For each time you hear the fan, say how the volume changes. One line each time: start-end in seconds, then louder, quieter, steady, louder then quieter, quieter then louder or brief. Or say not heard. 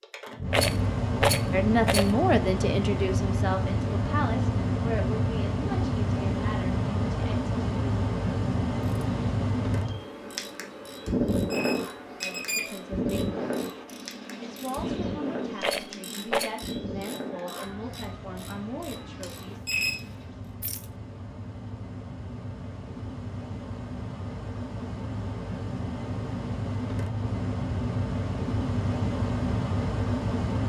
0.0-30.6 quieter then louder.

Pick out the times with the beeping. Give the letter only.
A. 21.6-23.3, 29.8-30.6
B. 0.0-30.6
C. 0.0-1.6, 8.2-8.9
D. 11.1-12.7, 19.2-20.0
D.